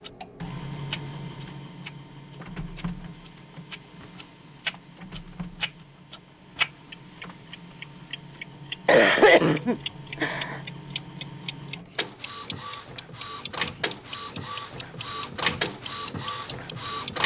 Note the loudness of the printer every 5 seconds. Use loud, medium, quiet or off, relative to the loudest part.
medium, quiet, medium, loud.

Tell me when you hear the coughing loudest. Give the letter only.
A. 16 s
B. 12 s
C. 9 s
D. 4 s
C.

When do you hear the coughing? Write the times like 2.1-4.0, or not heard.
8.8-10.6.